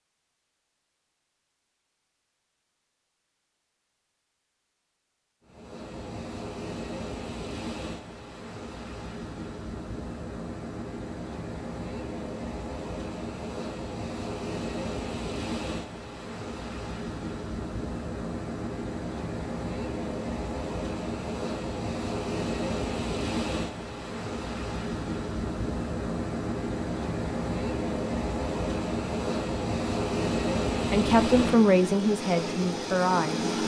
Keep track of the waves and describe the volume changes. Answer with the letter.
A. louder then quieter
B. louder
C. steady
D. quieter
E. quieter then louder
B.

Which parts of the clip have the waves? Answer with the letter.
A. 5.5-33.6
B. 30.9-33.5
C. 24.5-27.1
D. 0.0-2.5
A.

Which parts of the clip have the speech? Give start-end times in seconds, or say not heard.
30.9-33.5.